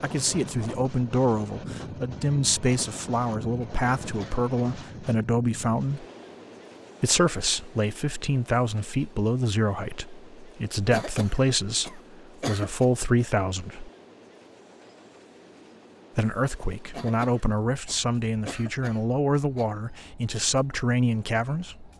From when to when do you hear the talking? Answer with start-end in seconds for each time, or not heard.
0.0-6.0, 7.0-13.9, 16.1-21.9.